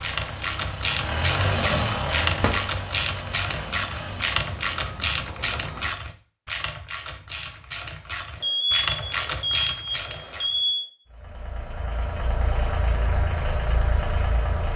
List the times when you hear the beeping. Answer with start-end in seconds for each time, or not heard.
3.9-5.9, 8.4-10.9.